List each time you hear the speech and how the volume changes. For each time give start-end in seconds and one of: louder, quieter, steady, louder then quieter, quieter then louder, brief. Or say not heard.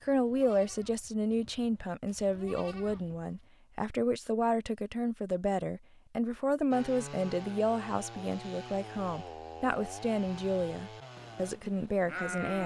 0.0-12.6 steady.